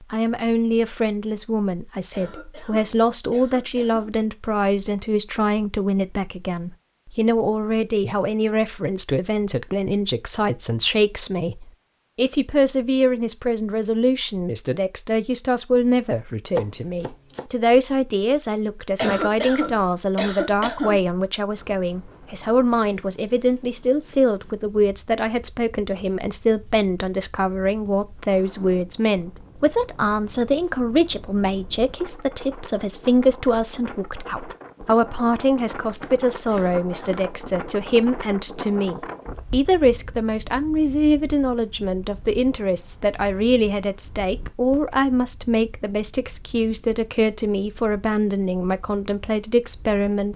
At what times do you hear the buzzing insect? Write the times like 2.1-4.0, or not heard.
not heard.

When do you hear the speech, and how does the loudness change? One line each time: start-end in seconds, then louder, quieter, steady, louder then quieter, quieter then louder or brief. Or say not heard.
0.0-50.3 steady.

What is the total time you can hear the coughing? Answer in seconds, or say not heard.
5 s.